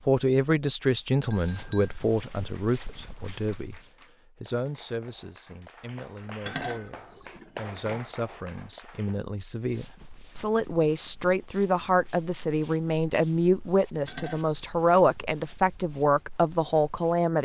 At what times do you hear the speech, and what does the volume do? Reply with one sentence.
The speech can be heard from 0.1 to 17.4 s, getting quieter then louder.